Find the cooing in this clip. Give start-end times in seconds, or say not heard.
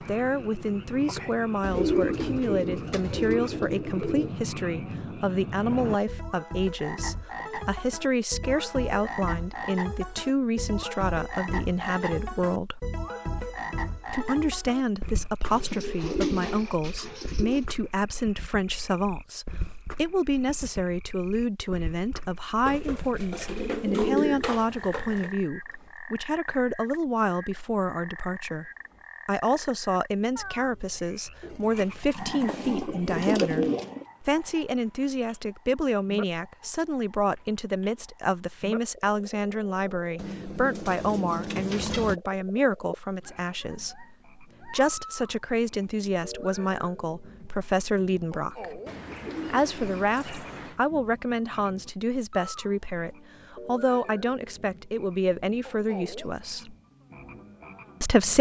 1.6-4.3, 15.5-17.6, 22.6-25.3, 31.4-34.0, 40.1-42.2, 48.9-50.8.